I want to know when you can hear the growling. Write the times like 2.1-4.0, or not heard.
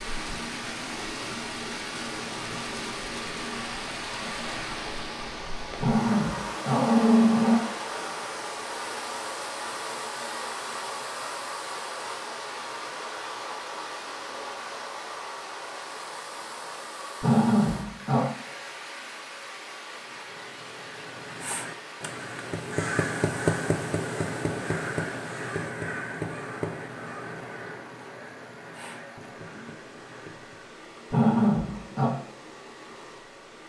5.8-7.5, 17.2-18.3, 31.1-32.1.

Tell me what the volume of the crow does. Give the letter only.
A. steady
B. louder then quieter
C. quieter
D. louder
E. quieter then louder
B.